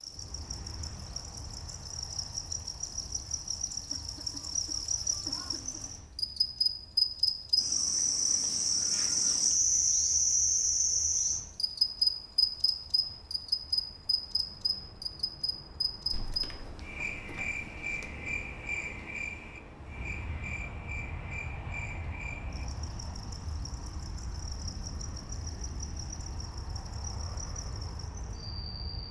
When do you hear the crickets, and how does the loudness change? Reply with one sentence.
You can hear the crickets from 0.0 to 29.0 s, getting louder then quieter.